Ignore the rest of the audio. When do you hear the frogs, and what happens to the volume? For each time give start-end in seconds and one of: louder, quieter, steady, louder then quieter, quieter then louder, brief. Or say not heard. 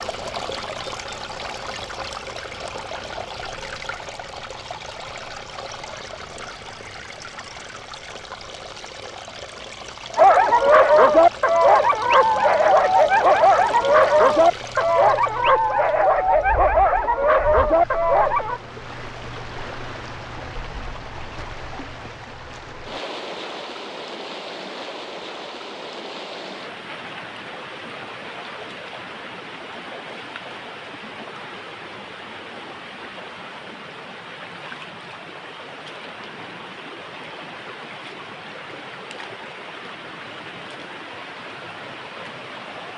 not heard.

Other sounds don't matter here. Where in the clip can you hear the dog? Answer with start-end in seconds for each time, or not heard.
10.2-18.6.